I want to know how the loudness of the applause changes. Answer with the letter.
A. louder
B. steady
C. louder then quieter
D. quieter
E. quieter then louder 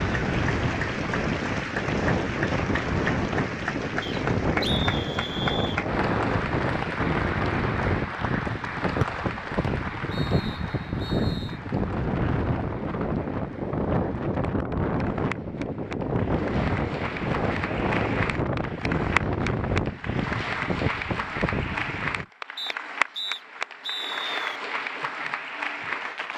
E.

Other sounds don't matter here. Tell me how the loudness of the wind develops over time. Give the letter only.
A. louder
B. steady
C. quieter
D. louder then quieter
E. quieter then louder
B.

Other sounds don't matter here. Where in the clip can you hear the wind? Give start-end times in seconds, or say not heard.
0.0-22.2.